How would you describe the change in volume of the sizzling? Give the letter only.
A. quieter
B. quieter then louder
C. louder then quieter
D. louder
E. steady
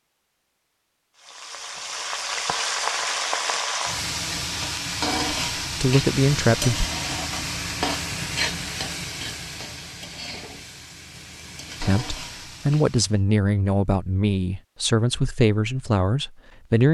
A.